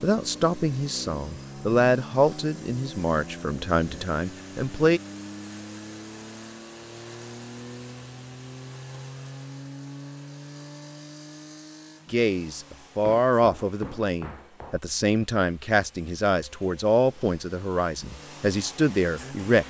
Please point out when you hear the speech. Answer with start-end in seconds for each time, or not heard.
0.0-5.0, 12.1-19.6.